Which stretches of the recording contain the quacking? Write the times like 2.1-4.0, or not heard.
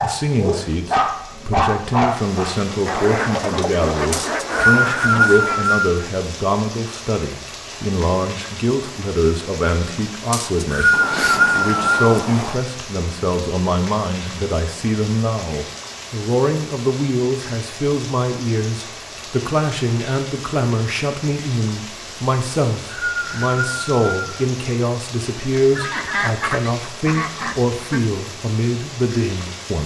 2.9-5.8, 10.9-12.6, 25.8-28.1.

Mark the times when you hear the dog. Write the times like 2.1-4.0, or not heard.
0.0-3.1.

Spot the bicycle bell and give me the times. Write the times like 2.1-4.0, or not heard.
not heard.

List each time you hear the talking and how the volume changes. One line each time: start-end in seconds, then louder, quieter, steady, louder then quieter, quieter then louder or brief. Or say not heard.
0.0-29.8 steady.